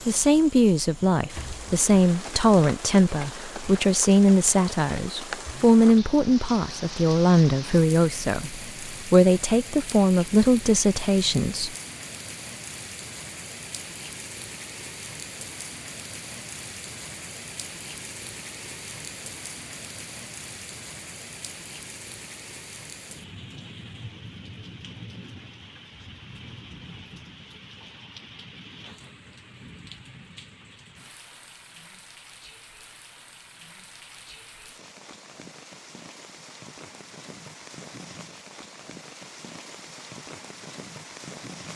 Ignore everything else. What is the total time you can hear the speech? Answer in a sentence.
You can hear the speech for 12 seconds altogether.